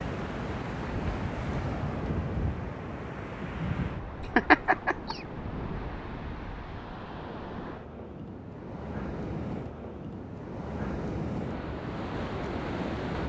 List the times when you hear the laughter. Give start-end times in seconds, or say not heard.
4.3-5.2.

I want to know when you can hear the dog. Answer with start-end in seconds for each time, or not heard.
not heard.